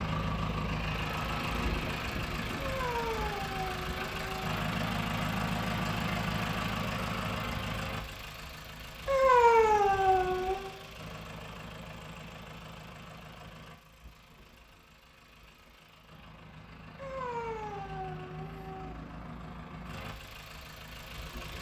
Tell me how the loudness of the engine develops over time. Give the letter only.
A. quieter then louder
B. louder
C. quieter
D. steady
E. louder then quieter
A.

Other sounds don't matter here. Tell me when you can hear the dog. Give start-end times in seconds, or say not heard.
2.5-4.5, 9.1-10.7, 16.9-18.9.